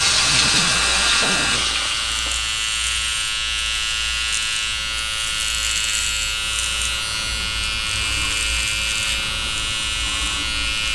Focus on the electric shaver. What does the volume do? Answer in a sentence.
The volume of the electric shaver stays about the same.